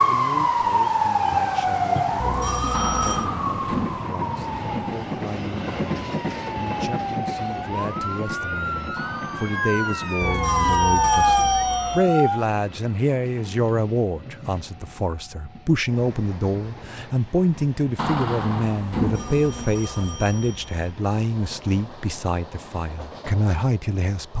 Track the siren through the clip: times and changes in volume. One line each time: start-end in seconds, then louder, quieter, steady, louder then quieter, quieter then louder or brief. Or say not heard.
0.0-12.4 quieter then louder.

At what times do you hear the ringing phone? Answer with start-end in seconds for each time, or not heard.
2.1-3.3, 10.2-12.1, 18.9-20.7.